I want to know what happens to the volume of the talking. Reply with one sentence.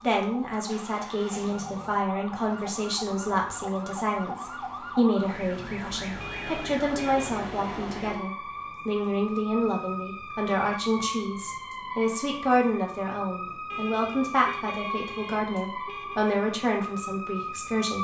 The loudness of the talking stays about the same.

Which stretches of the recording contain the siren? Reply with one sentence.
The siren can be heard from 0.0 to 17.9 s.